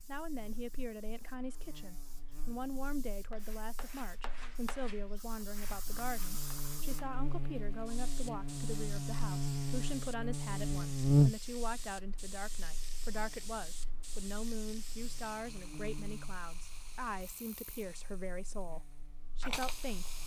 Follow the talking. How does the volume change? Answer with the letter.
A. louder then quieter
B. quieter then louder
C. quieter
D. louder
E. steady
E.